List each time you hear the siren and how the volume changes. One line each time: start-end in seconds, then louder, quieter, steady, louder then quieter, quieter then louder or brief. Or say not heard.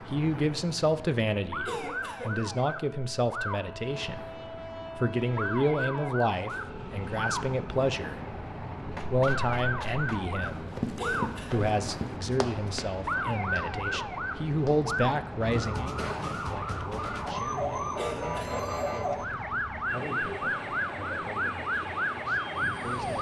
0.0-23.1 louder.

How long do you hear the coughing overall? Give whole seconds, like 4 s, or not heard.
2 s.